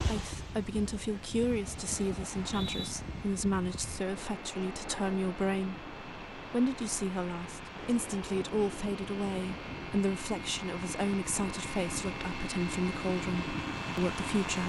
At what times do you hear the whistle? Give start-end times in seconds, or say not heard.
2.2-3.0.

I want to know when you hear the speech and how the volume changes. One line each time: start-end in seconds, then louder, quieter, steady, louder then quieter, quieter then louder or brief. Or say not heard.
0.0-14.6 steady.